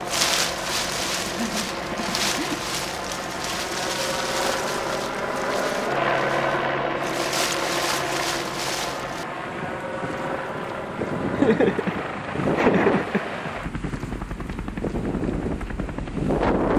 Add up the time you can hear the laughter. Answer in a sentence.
You can hear the laughter for 3 seconds altogether.